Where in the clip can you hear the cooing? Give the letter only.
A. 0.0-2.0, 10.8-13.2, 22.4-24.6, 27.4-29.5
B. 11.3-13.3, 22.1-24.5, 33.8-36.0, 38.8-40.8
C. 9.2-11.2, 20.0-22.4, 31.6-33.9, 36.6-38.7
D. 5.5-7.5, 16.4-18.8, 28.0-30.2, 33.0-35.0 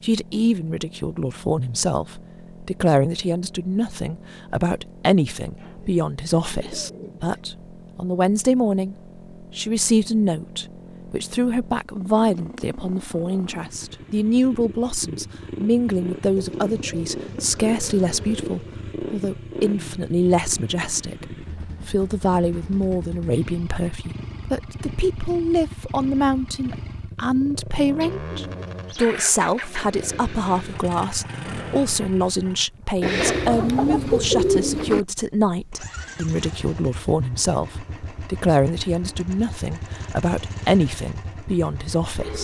D.